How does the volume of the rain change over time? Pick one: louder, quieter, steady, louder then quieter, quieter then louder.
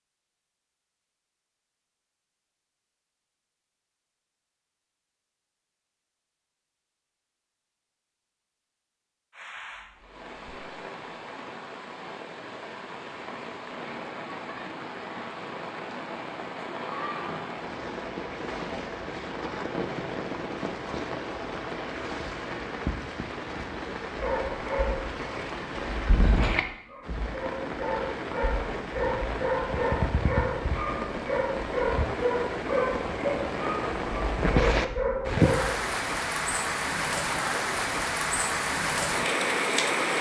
louder.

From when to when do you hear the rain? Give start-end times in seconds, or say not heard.
9.3-40.1.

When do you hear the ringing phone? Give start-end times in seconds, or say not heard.
not heard.